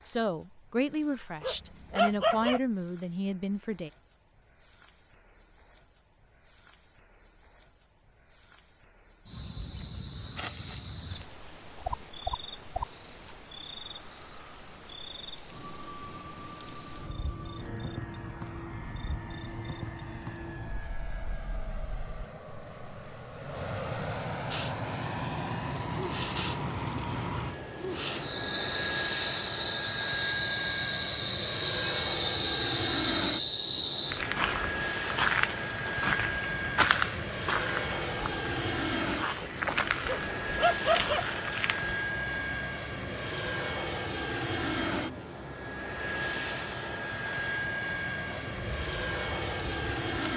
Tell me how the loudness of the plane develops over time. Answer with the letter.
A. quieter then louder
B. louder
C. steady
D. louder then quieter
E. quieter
B.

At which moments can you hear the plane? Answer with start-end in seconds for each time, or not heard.
15.4-50.3.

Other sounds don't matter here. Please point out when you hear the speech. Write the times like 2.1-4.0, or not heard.
0.0-3.9.